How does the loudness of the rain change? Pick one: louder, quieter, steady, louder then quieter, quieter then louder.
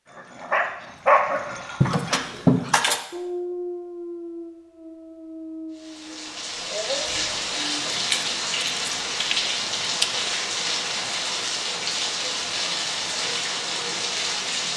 steady.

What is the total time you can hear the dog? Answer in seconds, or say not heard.
8 s.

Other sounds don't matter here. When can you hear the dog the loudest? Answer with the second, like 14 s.
1 s.